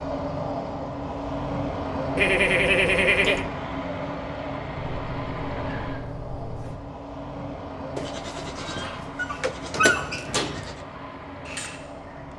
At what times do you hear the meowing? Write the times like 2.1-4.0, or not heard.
4.8-6.8.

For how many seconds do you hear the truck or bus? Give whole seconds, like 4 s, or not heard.
12 s.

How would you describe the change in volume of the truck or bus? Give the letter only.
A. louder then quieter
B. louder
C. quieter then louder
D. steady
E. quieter
E.